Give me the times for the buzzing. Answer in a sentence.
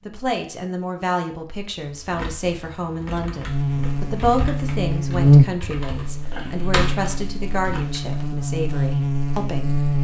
You can hear the buzzing from 3.5 to 9.9 s.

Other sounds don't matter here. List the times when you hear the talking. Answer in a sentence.
You can hear the talking from 0.1 to 9.8 s.